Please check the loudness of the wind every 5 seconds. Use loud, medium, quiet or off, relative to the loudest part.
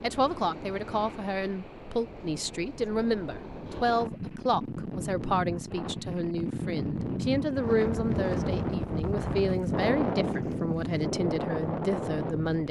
medium, loud, loud.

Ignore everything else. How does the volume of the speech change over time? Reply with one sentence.
The volume of the speech stays about the same.